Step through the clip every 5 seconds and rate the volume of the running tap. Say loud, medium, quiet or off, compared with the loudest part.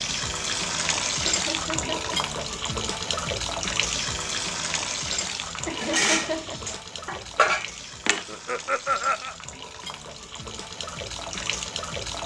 loud, medium, medium.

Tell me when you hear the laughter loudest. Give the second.
9 s.